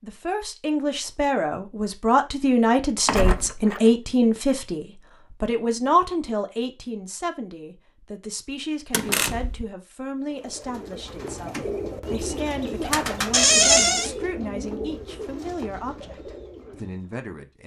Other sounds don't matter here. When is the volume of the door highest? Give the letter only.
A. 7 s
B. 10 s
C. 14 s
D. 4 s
C.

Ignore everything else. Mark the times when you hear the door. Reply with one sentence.
You can hear the door from 3.0 to 3.8 s, from 8.9 to 9.7 s and from 13.3 to 14.1 s.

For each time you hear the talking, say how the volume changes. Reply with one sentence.
The talking can be heard from 0.0 to 17.6 s, getting quieter.